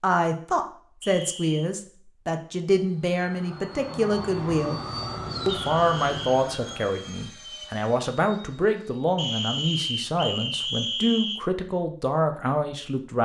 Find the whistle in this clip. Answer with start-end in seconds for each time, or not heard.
1.0-1.7, 5.5-6.4, 9.2-11.4.